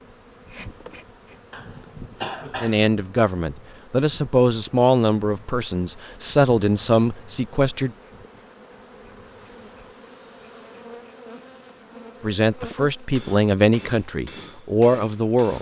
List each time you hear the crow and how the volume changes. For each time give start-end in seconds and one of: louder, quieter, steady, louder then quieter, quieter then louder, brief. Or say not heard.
not heard.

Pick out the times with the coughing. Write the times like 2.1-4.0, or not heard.
1.5-2.9.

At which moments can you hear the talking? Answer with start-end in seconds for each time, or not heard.
2.6-7.9, 12.2-15.5.